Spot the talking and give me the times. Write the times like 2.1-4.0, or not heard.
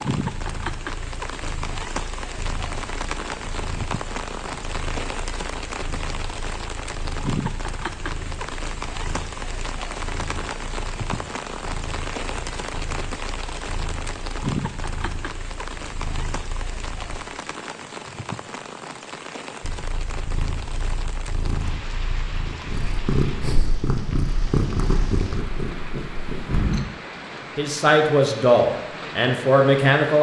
27.6-30.1.